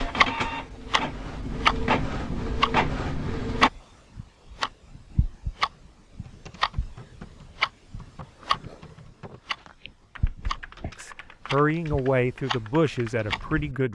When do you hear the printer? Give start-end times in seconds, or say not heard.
0.0-3.7.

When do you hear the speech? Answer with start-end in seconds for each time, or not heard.
10.9-13.9.